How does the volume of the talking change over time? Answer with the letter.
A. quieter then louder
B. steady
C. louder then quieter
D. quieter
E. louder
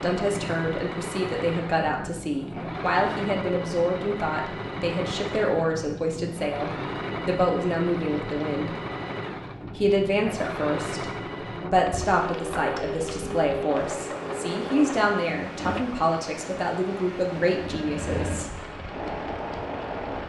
B.